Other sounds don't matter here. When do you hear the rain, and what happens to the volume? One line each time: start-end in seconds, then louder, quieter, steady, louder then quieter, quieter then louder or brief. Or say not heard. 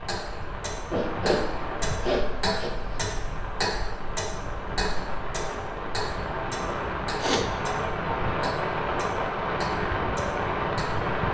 0.0-11.2 louder.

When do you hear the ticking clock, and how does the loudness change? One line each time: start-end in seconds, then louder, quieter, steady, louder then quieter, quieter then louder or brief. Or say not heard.
0.0-11.2 quieter.